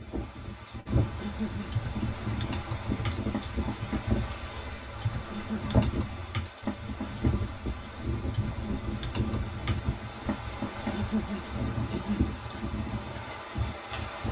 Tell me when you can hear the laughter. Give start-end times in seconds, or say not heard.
not heard.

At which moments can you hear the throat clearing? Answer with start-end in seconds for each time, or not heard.
1.1-1.8, 5.3-5.8, 10.9-12.3.